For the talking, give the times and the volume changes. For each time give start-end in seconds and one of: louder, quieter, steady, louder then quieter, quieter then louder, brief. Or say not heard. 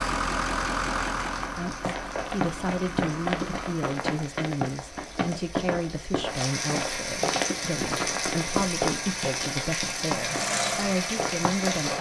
1.6-11.9 steady.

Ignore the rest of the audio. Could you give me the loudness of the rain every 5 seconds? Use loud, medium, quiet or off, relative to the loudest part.
quiet, loud, loud.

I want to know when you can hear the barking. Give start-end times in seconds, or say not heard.
not heard.